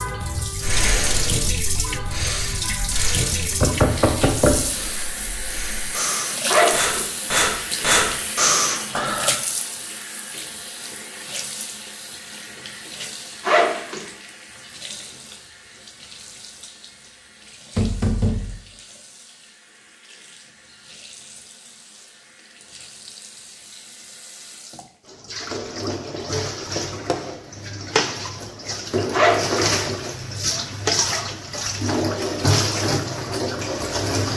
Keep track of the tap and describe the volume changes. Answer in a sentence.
The loudness of the tap goes down, then up.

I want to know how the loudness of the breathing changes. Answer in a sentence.
The loudness of the breathing goes down, then up.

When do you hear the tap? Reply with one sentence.
The tap can be heard from 0.0 to 34.3 s.